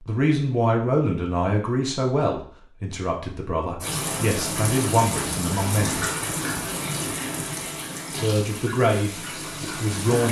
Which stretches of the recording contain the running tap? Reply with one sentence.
You can hear the running tap from 3.8 to 10.2 s.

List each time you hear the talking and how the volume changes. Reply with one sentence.
The talking can be heard from 0.0 to 6.0 s, getting quieter then louder; and briefly from 8.2 to 10.2 s.